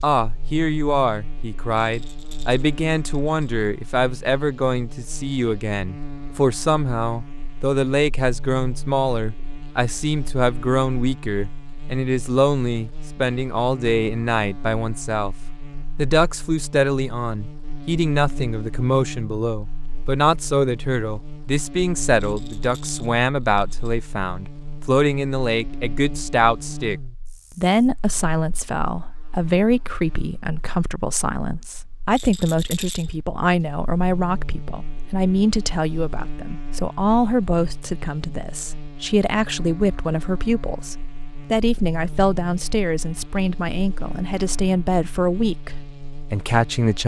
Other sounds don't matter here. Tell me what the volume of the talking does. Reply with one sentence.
The loudness of the talking stays about the same.